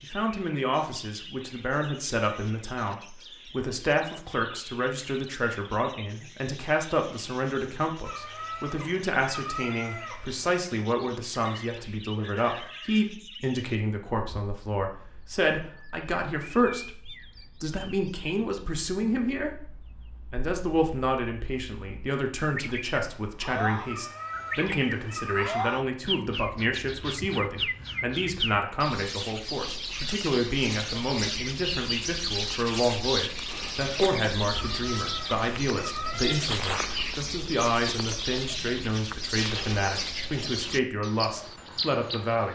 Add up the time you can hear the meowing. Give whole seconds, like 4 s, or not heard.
6 s.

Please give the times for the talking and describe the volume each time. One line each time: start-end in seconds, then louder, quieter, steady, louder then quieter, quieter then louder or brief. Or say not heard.
0.0-42.5 steady.